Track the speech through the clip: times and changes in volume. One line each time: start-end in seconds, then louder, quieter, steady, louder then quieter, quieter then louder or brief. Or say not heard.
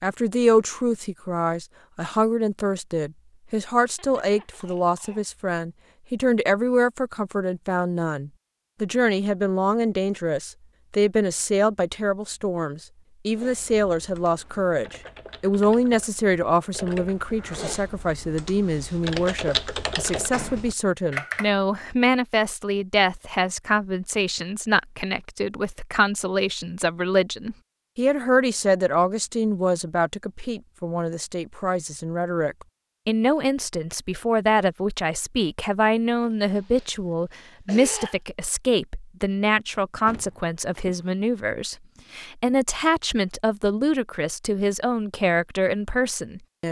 0.0-46.6 steady.